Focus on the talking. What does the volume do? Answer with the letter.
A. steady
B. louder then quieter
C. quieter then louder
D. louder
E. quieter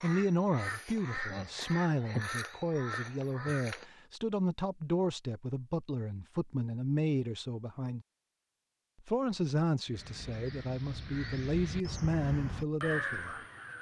A.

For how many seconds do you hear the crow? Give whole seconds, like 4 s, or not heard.
8 s.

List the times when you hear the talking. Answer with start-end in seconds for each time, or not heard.
0.0-8.1, 9.1-13.4.